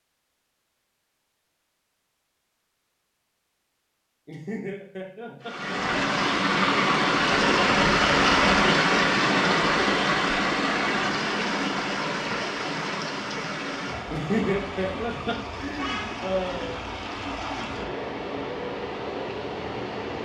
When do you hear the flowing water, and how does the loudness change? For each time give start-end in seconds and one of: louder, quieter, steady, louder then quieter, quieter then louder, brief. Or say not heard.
5.4-20.2 quieter.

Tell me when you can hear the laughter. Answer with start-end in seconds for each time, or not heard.
4.2-5.6, 14.1-16.8.